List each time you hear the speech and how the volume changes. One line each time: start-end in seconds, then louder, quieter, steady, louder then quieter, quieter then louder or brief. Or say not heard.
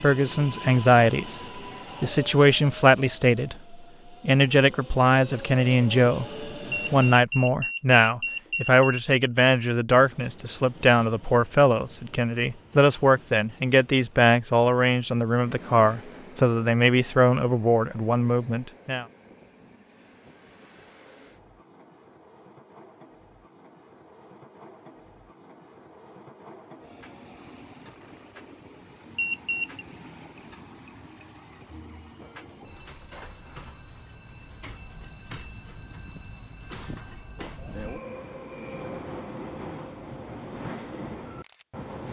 0.0-19.1 steady.